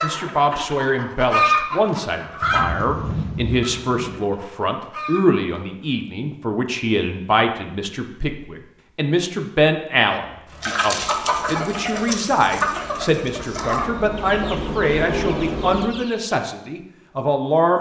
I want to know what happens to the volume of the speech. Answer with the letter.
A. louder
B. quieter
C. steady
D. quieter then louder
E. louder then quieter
C.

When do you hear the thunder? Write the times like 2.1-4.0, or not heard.
2.4-4.2.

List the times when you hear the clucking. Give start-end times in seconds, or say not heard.
0.0-5.5, 10.6-16.4.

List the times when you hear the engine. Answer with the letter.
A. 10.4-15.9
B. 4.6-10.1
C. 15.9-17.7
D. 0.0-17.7
A.